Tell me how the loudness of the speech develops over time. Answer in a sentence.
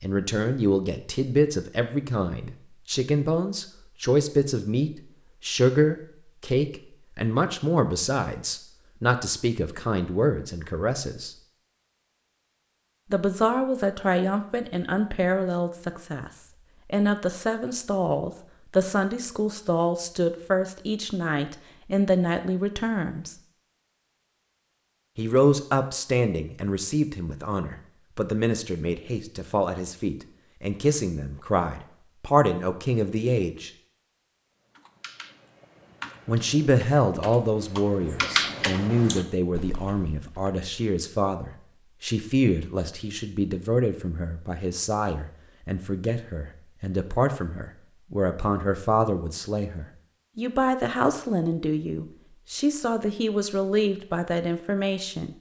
The volume of the speech stays about the same.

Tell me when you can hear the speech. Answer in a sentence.
The speech can be heard from 0.0 to 11.3 s, from 13.1 to 23.4 s, from 25.1 to 33.7 s and from 36.2 to 55.3 s.